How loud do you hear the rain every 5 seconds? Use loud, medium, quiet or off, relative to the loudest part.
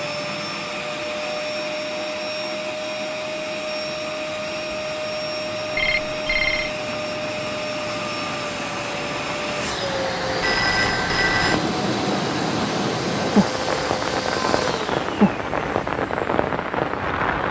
quiet, medium, loud, loud.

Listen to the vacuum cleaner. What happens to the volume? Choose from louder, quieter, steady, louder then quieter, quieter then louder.
steady.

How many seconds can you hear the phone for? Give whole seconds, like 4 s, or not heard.
2 s.